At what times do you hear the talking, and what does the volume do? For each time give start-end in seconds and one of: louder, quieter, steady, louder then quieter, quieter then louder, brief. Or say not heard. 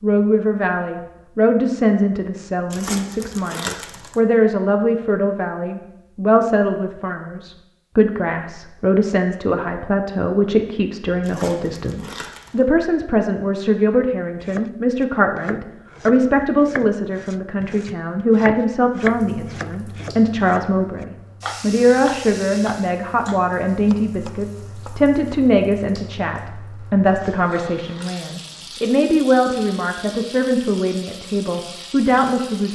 0.0-32.6 steady.